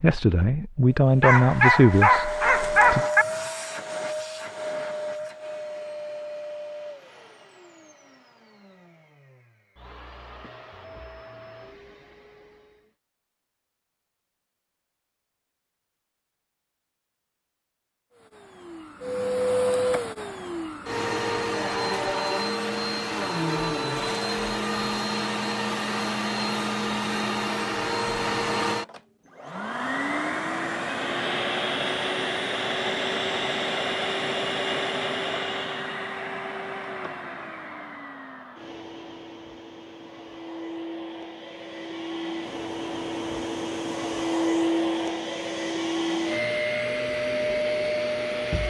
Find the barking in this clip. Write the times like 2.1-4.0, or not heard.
1.2-3.2.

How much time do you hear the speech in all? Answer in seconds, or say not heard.
3 s.